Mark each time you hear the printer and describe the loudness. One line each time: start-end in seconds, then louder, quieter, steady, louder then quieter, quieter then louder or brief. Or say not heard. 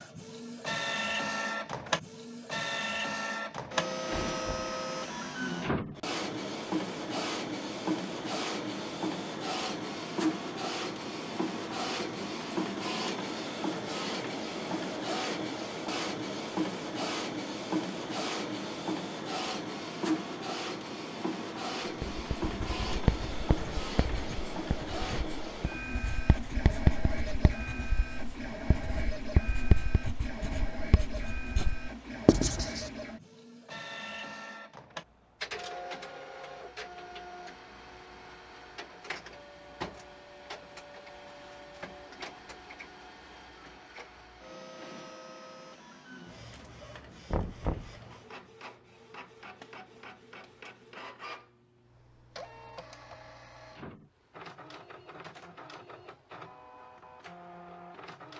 0.0-58.3 quieter.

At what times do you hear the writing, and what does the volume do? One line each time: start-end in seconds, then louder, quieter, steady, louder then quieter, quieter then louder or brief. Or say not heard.
22.0-32.9 quieter then louder.